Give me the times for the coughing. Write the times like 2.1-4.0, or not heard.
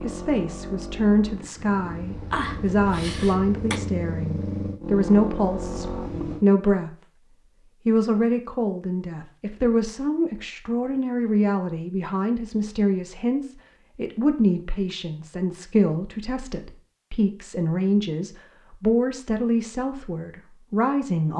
2.3-3.8.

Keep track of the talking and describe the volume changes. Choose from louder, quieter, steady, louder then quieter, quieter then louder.
steady.